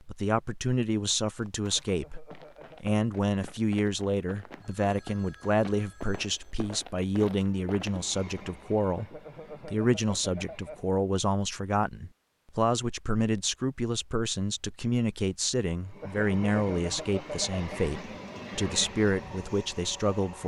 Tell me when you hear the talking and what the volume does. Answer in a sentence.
You can hear the talking from 0.1 to 20.4 s, at a steady volume.